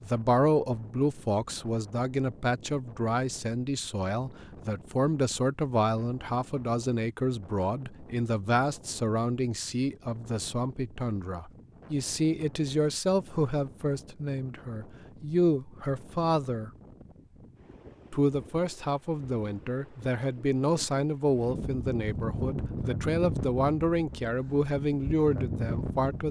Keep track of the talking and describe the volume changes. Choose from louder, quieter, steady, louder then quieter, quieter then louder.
steady.